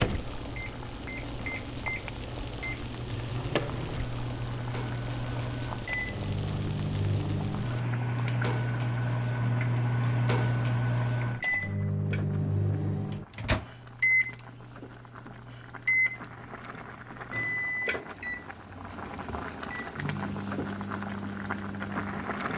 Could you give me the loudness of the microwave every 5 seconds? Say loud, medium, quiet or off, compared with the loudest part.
medium, loud, loud, medium, medium.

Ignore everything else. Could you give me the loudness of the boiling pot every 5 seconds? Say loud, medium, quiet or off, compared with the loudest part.
loud, loud, quiet, medium, loud.